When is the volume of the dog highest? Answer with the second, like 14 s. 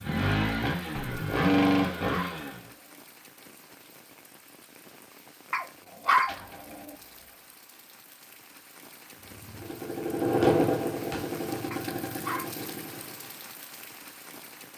6 s.